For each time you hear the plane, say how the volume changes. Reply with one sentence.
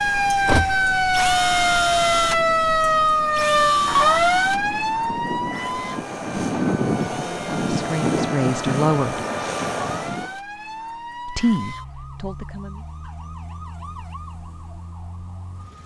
The plane can be heard from 0.0 to 10.3 s, getting louder.